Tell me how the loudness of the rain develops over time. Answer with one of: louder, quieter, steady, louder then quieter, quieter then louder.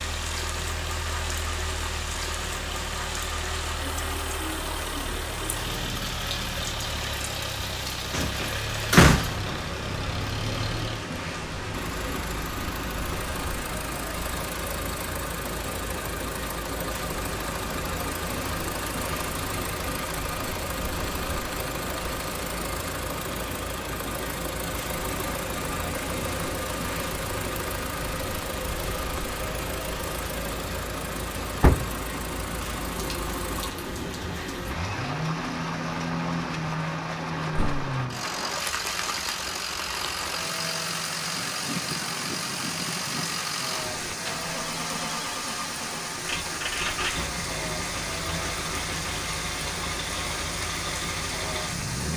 steady.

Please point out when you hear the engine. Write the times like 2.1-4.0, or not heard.
0.0-52.1.